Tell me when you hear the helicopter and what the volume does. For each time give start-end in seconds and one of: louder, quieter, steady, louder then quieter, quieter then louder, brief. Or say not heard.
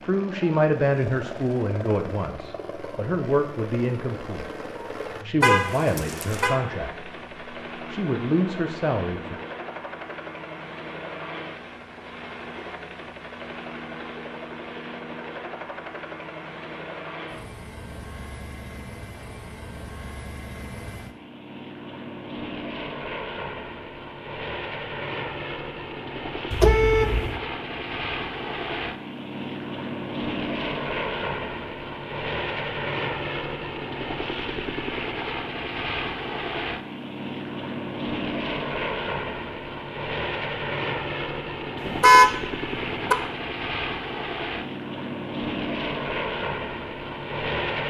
0.0-47.8 louder.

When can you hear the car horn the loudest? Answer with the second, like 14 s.
42 s.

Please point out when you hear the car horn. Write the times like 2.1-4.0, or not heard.
5.4-6.6, 26.5-27.4, 41.9-43.1.